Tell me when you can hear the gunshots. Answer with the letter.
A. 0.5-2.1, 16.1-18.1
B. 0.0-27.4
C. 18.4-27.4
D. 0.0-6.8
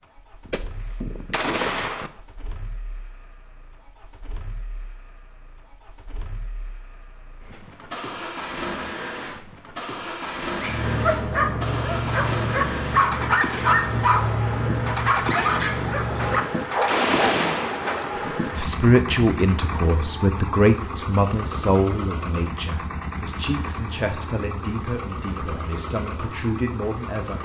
A.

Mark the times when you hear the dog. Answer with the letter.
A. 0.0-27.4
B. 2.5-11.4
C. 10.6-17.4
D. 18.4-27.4
C.